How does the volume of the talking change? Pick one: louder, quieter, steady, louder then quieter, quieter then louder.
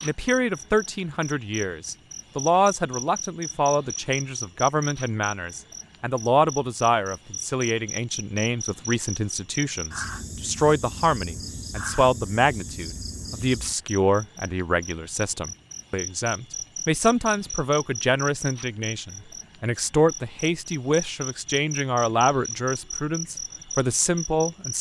steady.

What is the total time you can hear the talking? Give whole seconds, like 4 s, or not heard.
25 s.